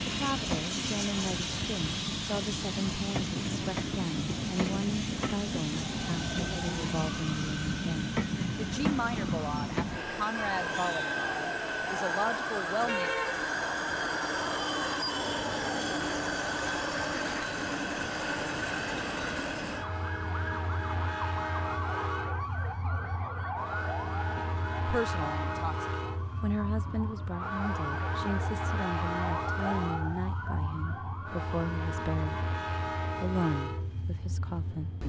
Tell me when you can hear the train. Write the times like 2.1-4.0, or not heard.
0.0-35.0.